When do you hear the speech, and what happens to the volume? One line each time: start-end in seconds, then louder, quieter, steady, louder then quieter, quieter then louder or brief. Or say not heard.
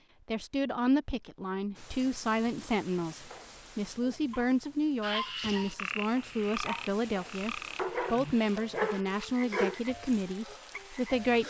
0.2-11.4 steady.